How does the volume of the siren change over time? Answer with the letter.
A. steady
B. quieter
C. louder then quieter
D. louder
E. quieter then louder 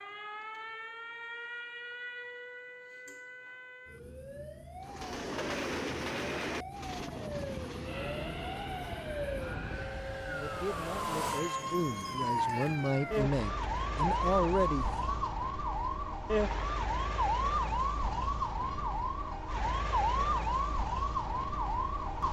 D.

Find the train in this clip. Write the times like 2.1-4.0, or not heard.
4.8-22.2.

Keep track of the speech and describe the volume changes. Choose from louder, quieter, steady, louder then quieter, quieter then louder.
louder.